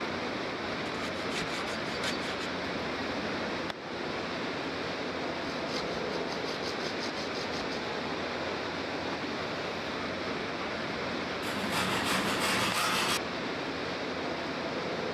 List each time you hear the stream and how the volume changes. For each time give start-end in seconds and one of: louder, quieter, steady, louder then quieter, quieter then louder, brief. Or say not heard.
0.0-15.0 steady.